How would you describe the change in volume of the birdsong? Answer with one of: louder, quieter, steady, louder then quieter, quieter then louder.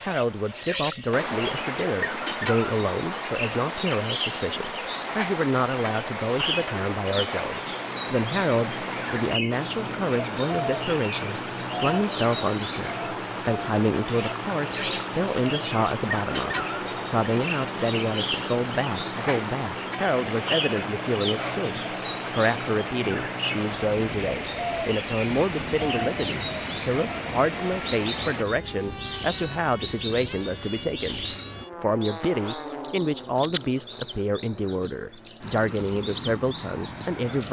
steady.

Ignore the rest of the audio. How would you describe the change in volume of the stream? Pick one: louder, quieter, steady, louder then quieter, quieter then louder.
steady.